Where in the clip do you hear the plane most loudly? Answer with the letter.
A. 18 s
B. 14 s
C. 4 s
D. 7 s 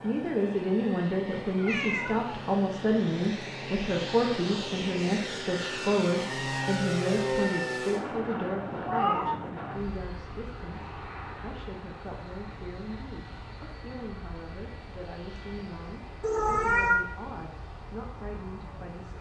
D.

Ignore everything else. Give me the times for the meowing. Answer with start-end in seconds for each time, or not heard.
1.6-2.5, 8.8-9.4, 16.2-17.0.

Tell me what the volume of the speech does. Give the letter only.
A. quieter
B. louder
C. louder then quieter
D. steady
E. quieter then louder
A.